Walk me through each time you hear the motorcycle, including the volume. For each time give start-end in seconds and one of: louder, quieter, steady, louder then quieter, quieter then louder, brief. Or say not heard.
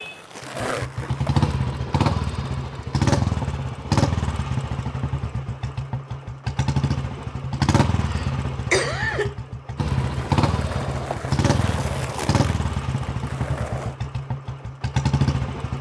0.0-15.7 steady.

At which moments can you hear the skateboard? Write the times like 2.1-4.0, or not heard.
0.0-1.5, 9.8-13.9.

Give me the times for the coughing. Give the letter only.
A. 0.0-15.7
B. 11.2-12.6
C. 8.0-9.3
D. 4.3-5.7
C.